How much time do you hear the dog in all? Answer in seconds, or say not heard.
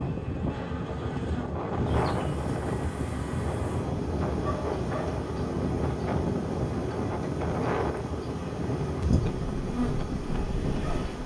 not heard.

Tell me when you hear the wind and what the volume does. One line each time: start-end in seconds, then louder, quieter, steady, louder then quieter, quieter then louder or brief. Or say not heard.
0.0-11.2 steady.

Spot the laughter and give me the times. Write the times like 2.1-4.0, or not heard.
not heard.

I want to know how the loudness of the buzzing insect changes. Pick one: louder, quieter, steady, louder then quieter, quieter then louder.
steady.